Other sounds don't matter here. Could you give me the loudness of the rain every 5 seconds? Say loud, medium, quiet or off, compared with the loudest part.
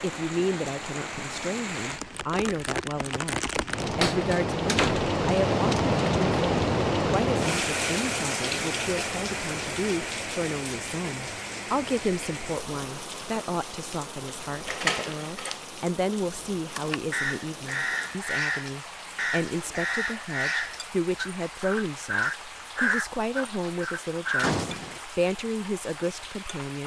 medium, loud, medium, quiet, quiet, quiet.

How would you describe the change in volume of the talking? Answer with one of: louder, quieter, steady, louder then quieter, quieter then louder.
steady.